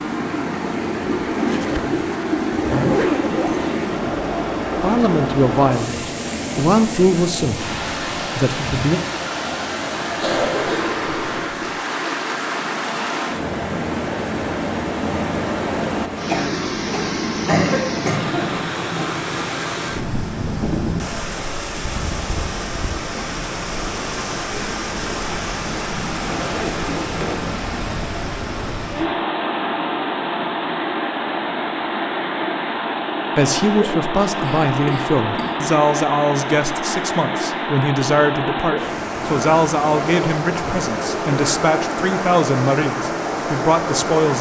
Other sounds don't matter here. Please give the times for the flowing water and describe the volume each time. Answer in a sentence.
You can hear the flowing water from 0.0 to 44.3 s, at a steady volume.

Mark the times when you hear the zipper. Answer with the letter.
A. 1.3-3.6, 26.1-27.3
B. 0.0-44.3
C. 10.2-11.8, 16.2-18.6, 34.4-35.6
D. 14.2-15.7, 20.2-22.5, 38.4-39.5
A.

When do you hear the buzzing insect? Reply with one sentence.
You can't hear the buzzing insect here.